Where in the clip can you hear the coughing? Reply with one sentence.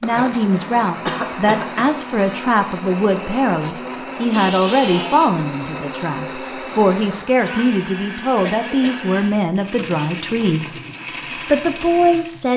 You can hear the coughing from 1.1 to 1.9 s, from 4.3 to 5.3 s and from 8.4 to 9.2 s.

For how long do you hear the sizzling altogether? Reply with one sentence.
The sizzling can't be heard in this clip.